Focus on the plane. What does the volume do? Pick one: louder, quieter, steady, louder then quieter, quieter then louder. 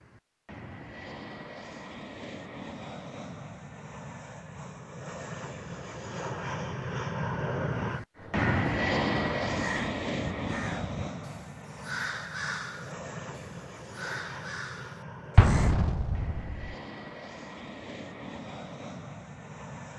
louder then quieter.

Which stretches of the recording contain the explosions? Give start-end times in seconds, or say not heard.
15.3-16.8.